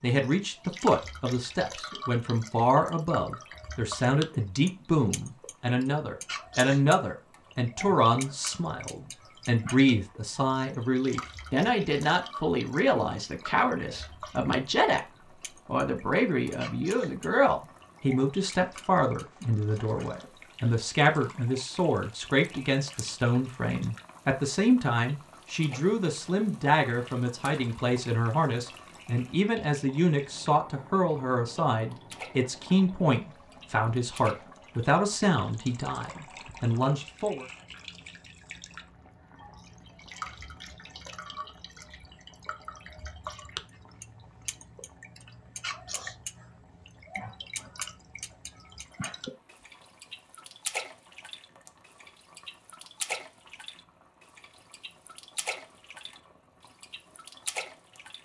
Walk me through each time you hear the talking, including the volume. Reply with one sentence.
You can hear the talking from 0.0 to 37.5 s, at a steady volume.